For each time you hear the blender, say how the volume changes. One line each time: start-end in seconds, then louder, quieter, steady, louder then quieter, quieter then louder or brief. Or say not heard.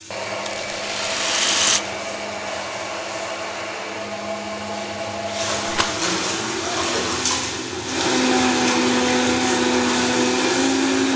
0.1-11.1 louder.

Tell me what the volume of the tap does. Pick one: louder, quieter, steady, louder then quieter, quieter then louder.
louder.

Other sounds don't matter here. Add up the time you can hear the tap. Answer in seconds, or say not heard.
11 s.